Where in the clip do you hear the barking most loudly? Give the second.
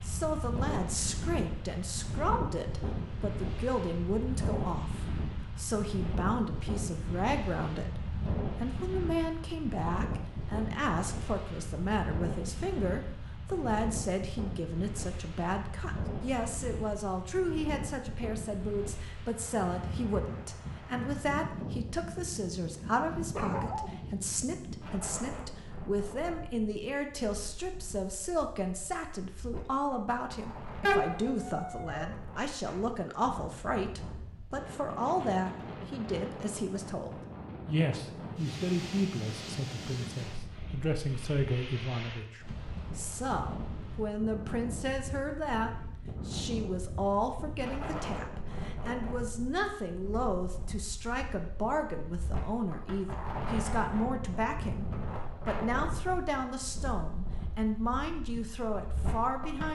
31 s.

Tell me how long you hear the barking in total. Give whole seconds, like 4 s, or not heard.
2 s.